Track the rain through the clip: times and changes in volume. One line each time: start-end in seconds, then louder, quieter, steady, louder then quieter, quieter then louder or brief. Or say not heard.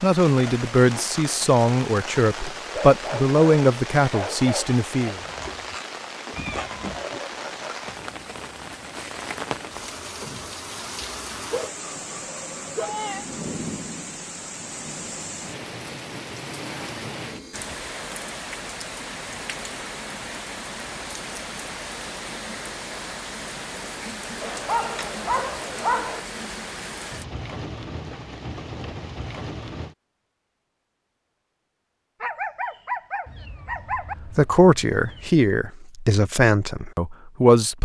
0.0-29.9 steady.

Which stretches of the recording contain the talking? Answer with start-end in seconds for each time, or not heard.
0.0-5.2, 34.4-37.7.